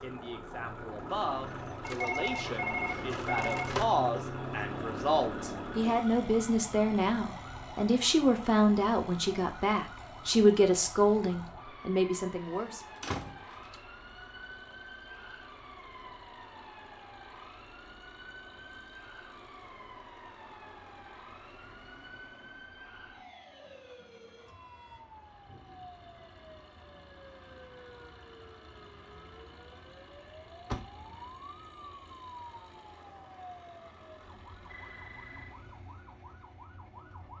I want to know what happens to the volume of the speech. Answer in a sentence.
The loudness of the speech goes up.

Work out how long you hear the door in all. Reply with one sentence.
You can hear the door for 2 seconds altogether.